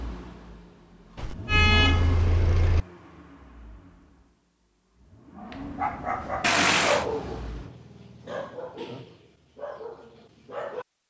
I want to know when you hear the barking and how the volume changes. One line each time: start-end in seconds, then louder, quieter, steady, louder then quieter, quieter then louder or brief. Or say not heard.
5.3-10.8 quieter.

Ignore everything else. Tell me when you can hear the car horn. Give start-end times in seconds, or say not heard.
1.1-2.9, 6.4-7.0.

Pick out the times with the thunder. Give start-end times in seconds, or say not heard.
not heard.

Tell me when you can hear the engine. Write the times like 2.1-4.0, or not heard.
0.0-7.8.